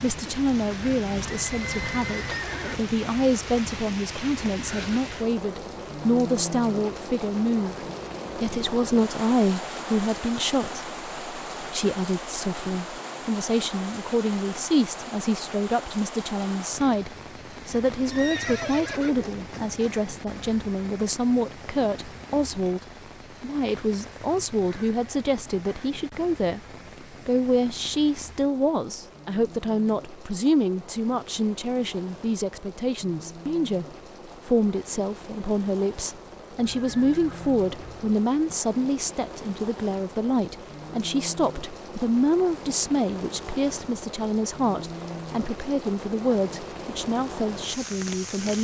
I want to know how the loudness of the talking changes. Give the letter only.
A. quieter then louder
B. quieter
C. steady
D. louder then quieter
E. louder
C.